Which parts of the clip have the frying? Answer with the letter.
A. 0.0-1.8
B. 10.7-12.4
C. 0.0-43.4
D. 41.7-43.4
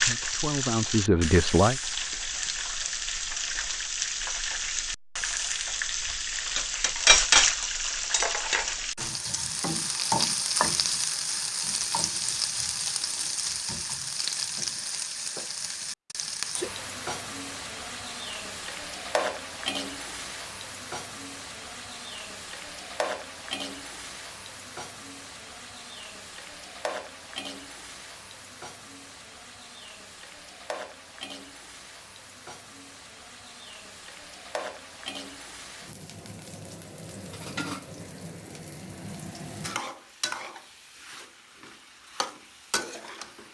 C.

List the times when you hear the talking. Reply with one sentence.
The talking can be heard from 0.0 to 1.8 s.